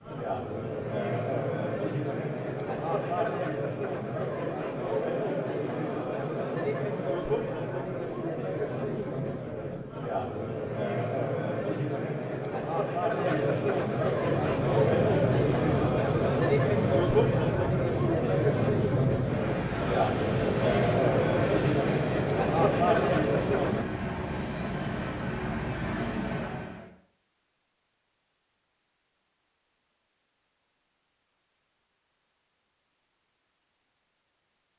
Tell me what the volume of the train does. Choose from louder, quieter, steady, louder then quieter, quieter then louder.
steady.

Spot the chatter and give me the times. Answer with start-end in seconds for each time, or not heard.
0.0-23.9.